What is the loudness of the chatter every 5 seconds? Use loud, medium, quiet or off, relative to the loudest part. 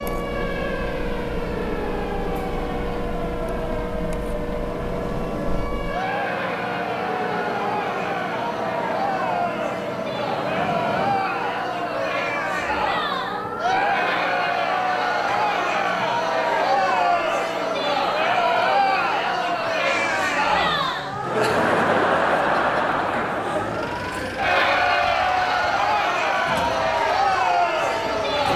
quiet, medium, loud, loud, loud, loud.